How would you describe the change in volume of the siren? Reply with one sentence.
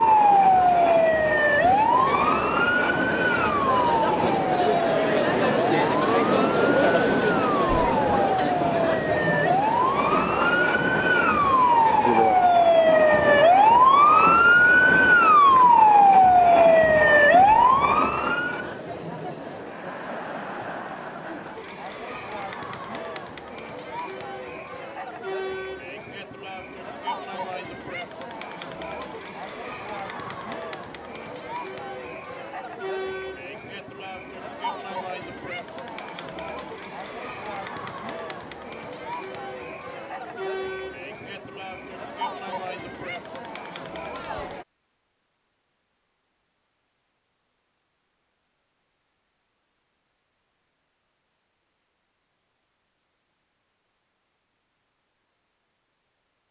The volume of the siren goes down, then up.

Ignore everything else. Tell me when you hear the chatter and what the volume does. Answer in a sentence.
You can hear the chatter from 0.0 to 44.6 s, getting quieter.